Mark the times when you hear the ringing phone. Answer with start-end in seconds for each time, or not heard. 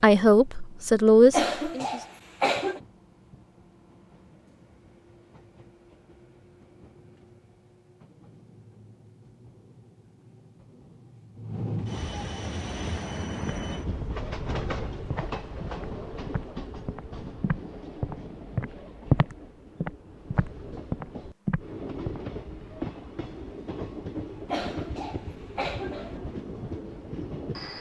not heard.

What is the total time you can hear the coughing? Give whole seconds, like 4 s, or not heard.
3 s.